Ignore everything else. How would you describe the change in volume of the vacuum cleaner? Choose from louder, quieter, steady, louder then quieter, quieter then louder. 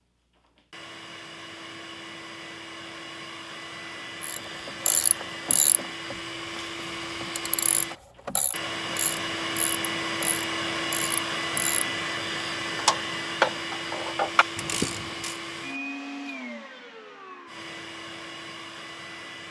louder then quieter.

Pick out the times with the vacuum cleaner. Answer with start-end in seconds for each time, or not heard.
0.3-19.4.